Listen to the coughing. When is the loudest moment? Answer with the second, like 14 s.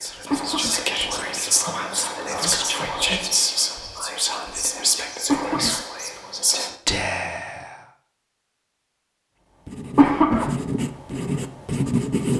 10 s.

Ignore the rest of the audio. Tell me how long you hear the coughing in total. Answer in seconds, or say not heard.
2 s.